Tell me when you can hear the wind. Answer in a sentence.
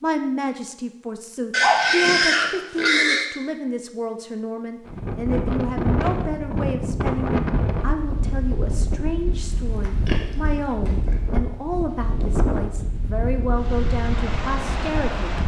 The wind can be heard from 4.8 to 15.4 s.